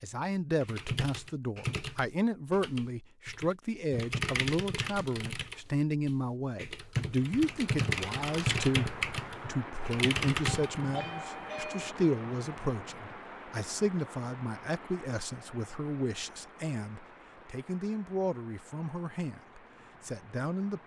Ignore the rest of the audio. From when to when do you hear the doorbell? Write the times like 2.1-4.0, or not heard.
10.4-11.9.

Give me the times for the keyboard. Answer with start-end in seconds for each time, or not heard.
0.6-10.8.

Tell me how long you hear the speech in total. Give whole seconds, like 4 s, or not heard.
21 s.